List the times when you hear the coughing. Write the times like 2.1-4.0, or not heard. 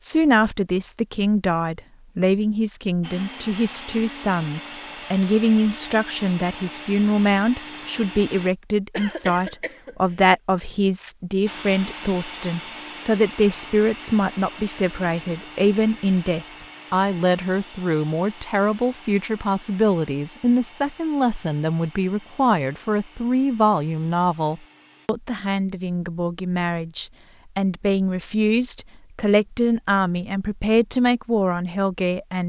8.9-10.2.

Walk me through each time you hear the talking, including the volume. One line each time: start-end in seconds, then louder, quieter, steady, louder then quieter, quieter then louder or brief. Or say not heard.
0.0-32.4 steady.